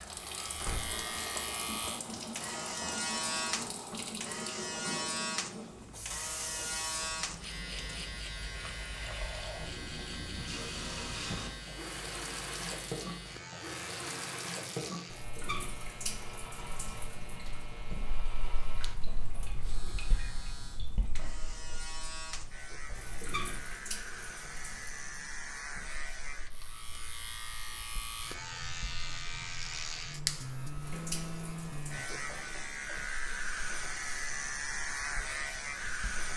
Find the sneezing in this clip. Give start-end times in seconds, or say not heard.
not heard.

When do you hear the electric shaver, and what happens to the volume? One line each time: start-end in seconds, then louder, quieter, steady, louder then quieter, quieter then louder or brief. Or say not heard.
0.0-36.3 quieter then louder.